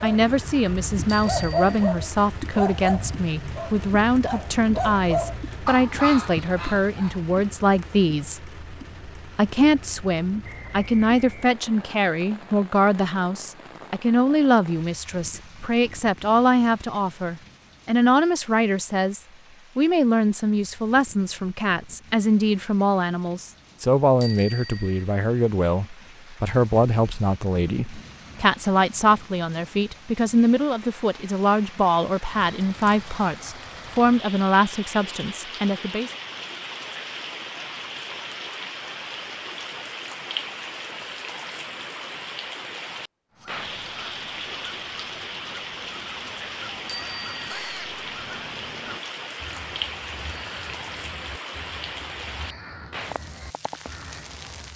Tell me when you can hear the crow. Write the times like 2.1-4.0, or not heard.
43.3-54.7.